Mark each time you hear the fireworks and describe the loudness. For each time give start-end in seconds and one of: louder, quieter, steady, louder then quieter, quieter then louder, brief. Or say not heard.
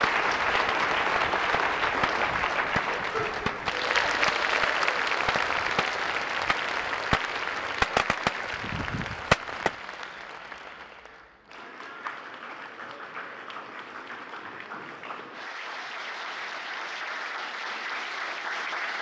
0.0-9.7 louder.